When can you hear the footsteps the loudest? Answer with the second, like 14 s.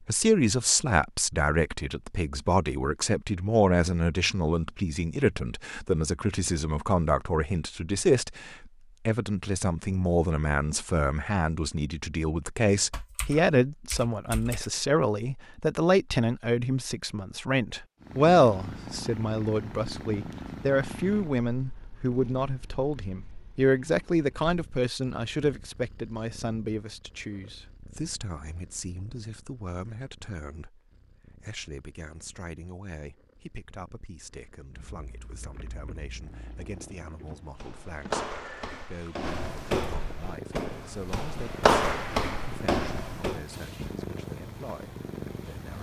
42 s.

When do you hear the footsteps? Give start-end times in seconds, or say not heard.
37.5-43.4.